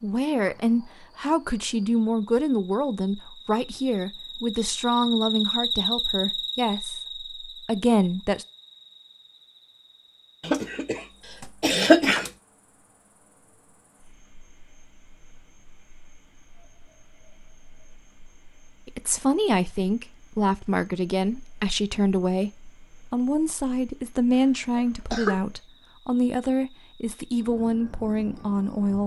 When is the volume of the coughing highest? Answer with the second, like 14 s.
12 s.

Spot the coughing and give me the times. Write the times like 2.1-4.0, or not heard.
10.4-11.0, 11.6-12.3, 24.8-25.4.